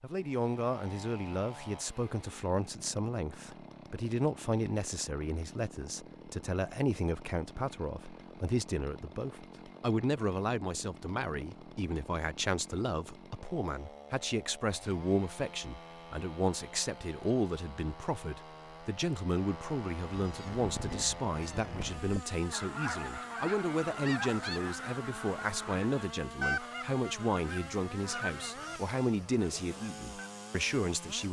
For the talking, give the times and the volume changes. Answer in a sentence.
You can hear the talking from 0.0 to 31.2 s, at a steady volume.